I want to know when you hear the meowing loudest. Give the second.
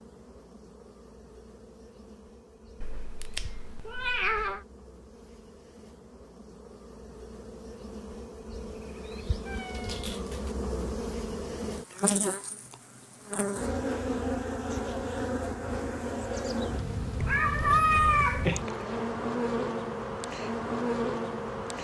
18 s.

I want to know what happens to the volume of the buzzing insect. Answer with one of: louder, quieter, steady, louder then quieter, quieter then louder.
louder.